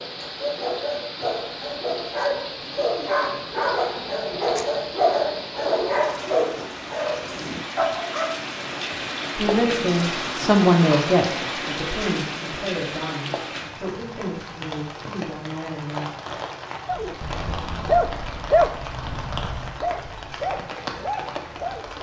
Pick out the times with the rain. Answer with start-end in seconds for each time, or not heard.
0.0-21.9.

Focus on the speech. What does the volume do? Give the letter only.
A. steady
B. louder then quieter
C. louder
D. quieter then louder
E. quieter
E.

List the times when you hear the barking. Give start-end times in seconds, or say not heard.
0.0-8.4, 16.9-21.9.